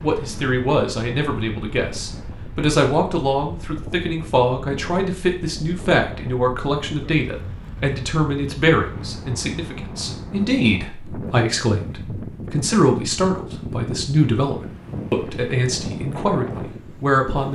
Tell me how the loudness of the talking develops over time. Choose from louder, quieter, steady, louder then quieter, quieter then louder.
steady.